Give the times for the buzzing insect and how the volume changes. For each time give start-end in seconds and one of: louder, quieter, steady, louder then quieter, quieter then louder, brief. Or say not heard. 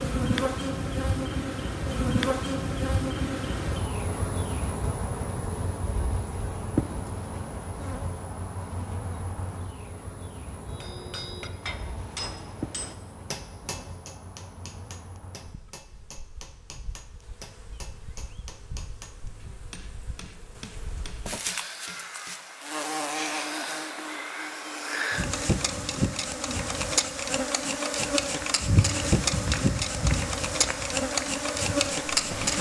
0.0-32.5 quieter then louder.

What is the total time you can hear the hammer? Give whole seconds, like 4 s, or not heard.
12 s.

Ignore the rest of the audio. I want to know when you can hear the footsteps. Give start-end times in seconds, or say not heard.
28.4-32.5.